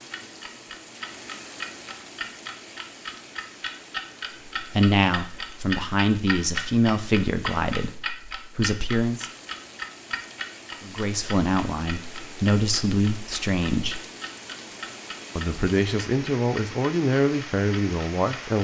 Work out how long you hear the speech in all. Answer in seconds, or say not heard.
11 s.